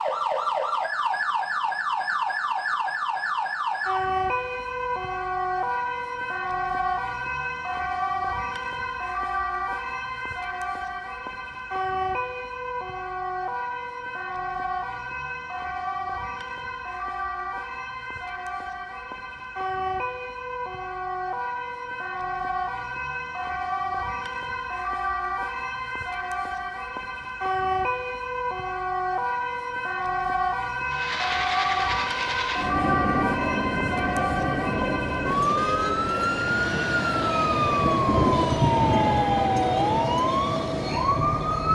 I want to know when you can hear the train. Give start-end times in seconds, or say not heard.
30.9-41.7.